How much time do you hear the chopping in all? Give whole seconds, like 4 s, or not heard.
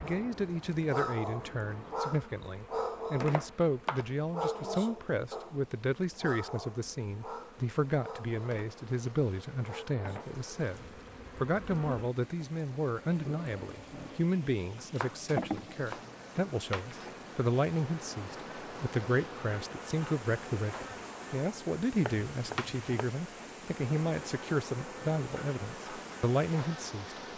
3 s.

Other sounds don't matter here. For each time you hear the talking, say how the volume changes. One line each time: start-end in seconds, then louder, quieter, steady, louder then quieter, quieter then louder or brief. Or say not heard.
0.0-27.2 steady.